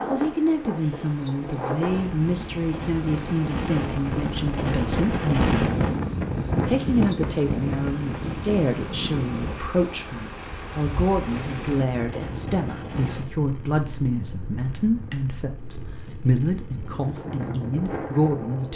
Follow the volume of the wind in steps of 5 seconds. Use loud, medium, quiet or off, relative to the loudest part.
loud, loud, medium, medium.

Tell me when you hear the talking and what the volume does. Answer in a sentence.
You can hear the talking from 0.1 to 18.7 s, at a steady volume.